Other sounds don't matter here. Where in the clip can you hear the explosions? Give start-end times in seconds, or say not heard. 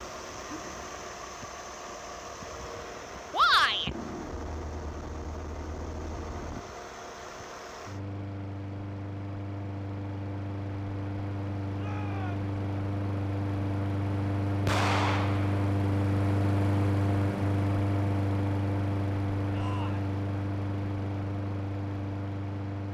14.7-15.7.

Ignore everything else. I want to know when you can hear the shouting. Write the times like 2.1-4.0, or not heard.
3.3-3.9, 11.8-12.5, 19.5-20.1.